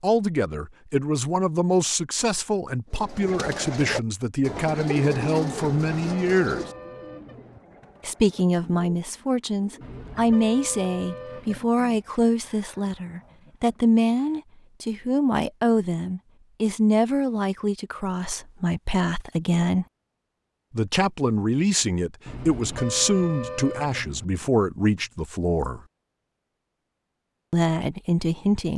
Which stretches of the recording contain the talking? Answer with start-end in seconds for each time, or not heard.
0.0-6.6, 8.0-19.9, 20.7-25.8, 27.5-28.7.